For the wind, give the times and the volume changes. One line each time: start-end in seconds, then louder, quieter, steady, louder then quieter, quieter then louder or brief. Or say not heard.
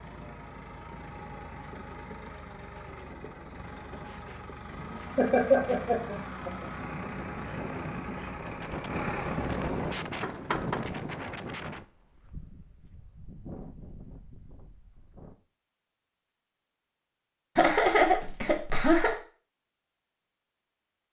0.0-15.4 louder then quieter.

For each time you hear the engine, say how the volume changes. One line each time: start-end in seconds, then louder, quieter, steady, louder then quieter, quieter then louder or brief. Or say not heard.
0.0-10.8 louder.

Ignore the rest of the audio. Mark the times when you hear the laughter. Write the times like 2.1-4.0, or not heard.
5.2-6.7, 17.6-19.1.